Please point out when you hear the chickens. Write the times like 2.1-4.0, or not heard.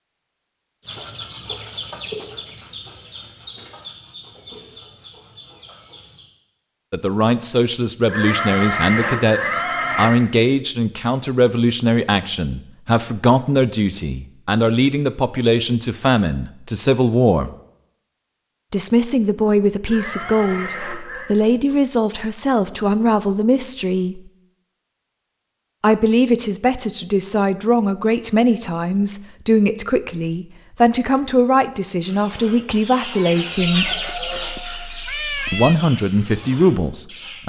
0.8-6.2, 32.0-37.4.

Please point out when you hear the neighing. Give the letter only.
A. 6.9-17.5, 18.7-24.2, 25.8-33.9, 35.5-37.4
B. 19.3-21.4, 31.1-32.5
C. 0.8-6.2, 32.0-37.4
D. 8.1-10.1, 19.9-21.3
D.